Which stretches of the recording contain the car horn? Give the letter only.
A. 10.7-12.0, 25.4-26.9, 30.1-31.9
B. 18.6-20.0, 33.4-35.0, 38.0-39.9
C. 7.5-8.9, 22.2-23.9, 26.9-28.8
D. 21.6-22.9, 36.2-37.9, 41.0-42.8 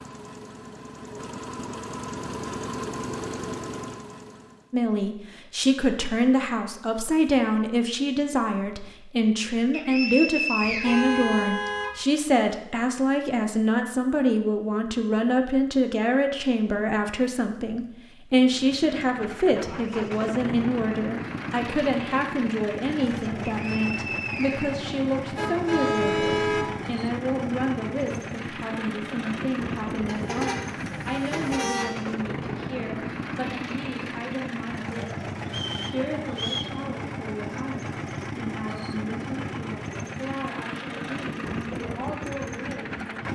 A.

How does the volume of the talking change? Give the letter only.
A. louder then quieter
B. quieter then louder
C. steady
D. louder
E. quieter
E.